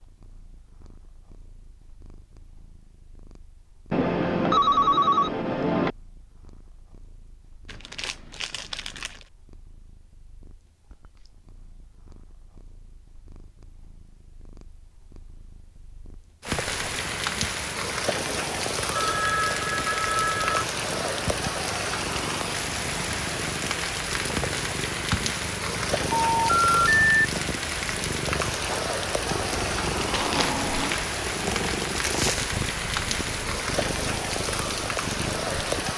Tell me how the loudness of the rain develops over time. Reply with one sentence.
The volume of the rain stays about the same.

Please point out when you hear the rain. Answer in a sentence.
You can hear the rain from 16.4 to 35.9 s.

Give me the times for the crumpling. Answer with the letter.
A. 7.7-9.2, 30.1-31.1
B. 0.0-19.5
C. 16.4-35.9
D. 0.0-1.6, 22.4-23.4
A.